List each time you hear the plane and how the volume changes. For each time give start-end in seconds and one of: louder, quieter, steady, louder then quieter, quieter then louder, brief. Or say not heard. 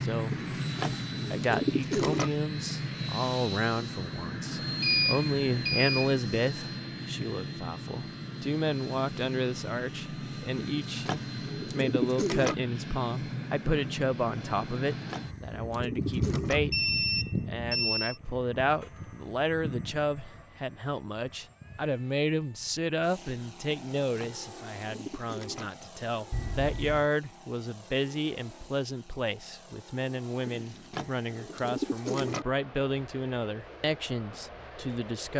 0.0-35.3 quieter.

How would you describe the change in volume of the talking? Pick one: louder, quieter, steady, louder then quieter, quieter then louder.
steady.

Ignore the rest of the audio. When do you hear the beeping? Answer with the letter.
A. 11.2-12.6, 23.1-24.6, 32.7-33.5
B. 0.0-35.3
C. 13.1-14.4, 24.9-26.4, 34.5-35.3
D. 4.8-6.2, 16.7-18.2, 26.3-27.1
D.